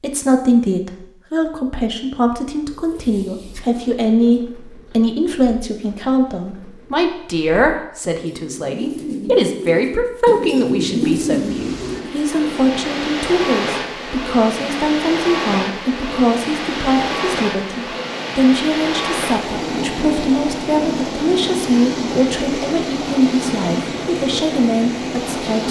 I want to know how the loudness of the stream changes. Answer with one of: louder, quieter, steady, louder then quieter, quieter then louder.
steady.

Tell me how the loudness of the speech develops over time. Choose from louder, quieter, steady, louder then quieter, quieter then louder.
steady.